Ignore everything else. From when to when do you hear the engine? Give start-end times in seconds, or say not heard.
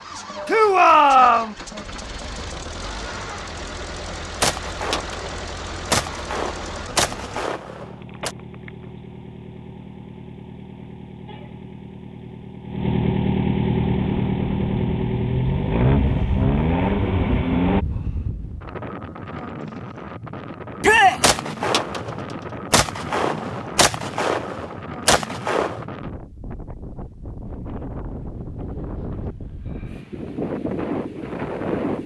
0.0-17.9.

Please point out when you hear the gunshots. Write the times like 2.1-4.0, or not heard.
4.4-8.3, 21.2-25.9.